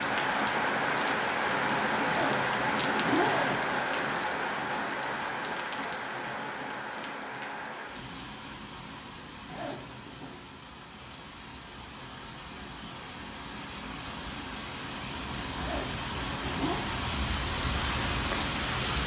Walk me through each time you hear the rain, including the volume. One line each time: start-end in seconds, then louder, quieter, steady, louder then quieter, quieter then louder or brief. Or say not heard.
0.0-19.0 quieter then louder.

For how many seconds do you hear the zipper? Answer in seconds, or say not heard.
4 s.